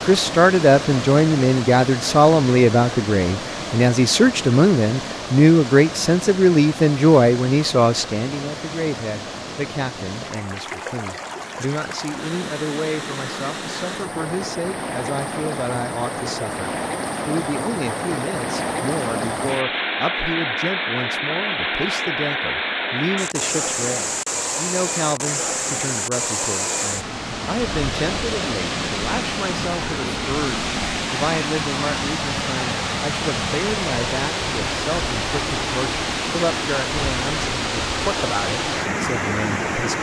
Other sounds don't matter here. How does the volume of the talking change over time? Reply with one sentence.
The volume of the talking goes down.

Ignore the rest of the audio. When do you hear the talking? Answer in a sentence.
The talking can be heard from 0.1 to 39.9 s.